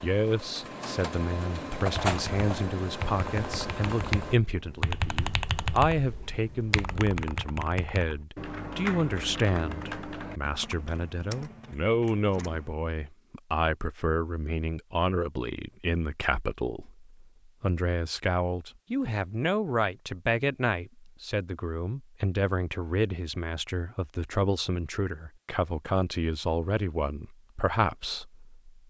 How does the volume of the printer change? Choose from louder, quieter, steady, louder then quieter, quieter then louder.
louder then quieter.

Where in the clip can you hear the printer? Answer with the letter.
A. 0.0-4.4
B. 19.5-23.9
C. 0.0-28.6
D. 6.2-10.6
A.